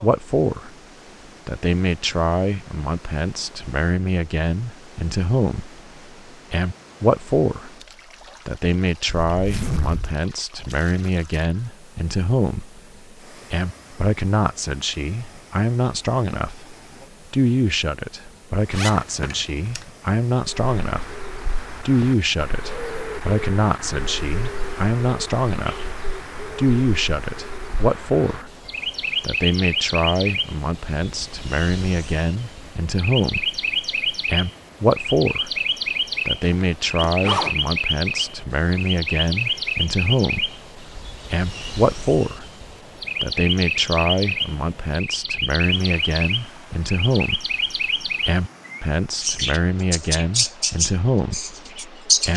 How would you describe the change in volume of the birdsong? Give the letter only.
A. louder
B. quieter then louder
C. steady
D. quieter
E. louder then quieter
A.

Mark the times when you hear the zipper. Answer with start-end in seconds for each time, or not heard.
9.3-10.2, 18.7-19.9, 36.5-37.5.